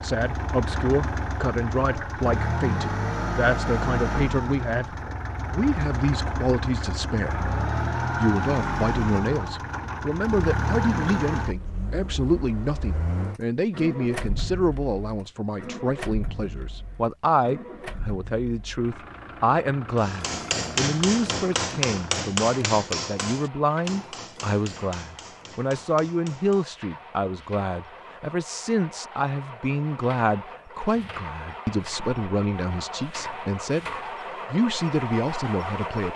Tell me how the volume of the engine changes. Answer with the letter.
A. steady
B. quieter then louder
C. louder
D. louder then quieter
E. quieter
B.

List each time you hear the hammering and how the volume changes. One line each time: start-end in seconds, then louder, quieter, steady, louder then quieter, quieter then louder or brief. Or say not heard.
19.9-26.7 quieter.